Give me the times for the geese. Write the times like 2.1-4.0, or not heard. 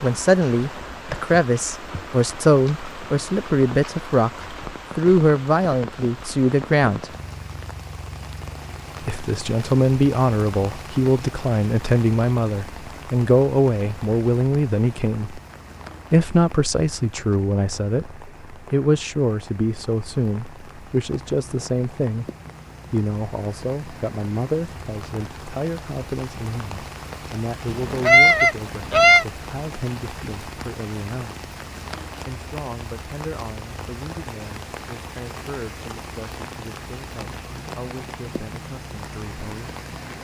27.6-29.2.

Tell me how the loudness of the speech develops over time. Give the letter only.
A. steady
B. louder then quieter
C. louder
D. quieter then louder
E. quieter
E.